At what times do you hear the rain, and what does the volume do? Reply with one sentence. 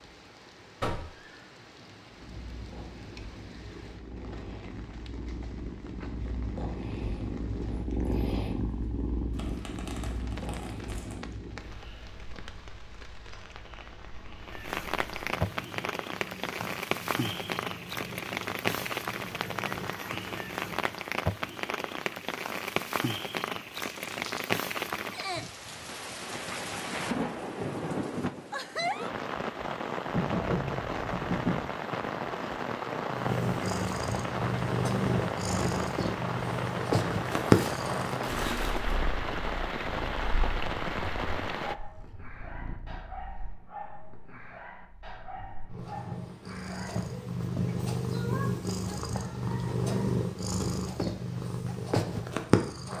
The rain can be heard from 0.0 to 41.8 s, getting louder.